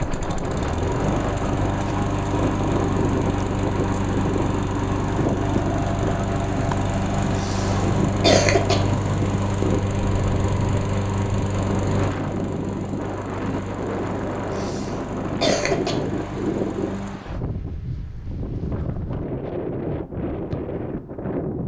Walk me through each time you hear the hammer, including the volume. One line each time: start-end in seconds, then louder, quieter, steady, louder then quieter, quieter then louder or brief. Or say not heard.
not heard.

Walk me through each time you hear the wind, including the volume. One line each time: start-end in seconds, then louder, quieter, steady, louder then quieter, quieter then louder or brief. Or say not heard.
0.0-21.6 steady.